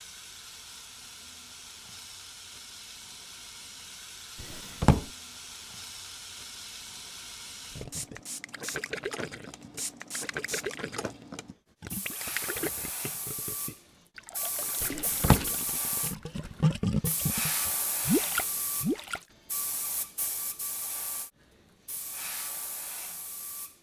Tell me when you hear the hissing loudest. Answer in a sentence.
The volume of the hissing peaks at 18 seconds.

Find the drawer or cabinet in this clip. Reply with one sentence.
The drawer or cabinet can be heard from 4.4 to 5.0 s and from 14.8 to 15.4 s.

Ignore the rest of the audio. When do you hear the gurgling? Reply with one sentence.
The gurgling can be heard from 7.7 to 19.2 s.